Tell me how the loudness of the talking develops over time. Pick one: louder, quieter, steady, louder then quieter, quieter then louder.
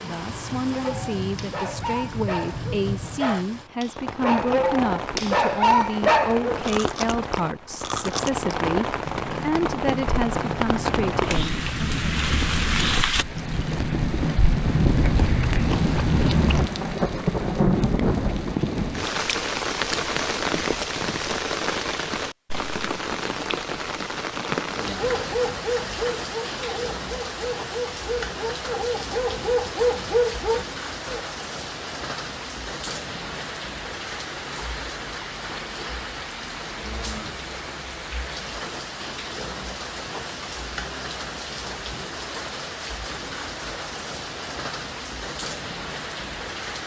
steady.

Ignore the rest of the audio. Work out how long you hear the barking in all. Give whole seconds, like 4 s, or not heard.
13 s.